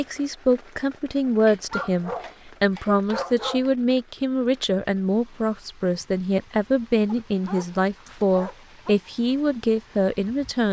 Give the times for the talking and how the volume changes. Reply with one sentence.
You can hear the talking from 0.0 to 10.6 s, at a steady volume.